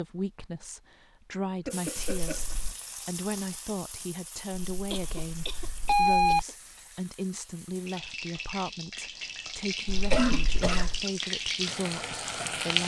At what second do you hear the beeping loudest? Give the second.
6 s.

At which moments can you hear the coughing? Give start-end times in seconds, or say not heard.
1.6-2.5, 4.9-6.5, 10.1-11.1.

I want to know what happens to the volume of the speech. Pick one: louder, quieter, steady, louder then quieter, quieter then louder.
steady.